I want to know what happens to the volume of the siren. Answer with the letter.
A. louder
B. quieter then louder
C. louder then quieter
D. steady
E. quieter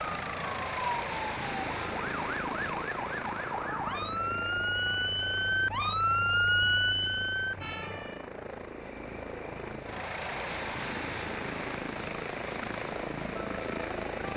A.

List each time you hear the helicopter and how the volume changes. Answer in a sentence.
You can hear the helicopter from 0.0 to 14.3 s, getting quieter then louder.